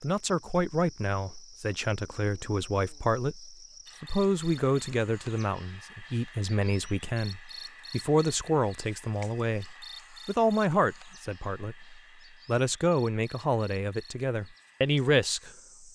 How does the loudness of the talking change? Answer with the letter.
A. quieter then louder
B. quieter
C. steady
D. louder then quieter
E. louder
C.